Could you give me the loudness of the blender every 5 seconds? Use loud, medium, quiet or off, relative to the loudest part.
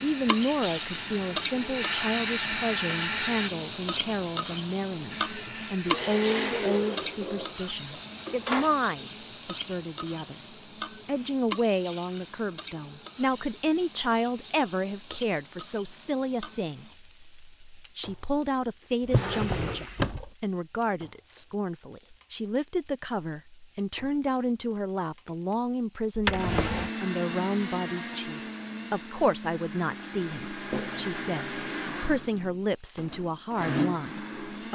loud, loud, off, off, off, loud, loud.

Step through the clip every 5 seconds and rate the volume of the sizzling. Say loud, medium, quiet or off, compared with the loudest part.
loud, loud, medium, quiet, quiet, quiet, quiet.